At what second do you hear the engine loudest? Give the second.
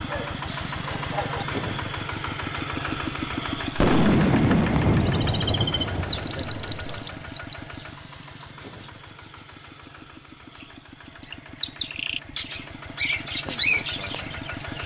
3 s.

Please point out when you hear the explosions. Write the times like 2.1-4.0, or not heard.
3.8-7.0.